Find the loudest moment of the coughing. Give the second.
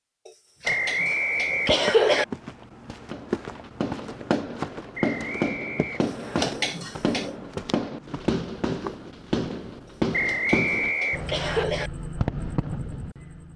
2 s.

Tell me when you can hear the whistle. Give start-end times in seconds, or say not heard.
0.7-2.2, 5.0-6.5, 10.1-11.7.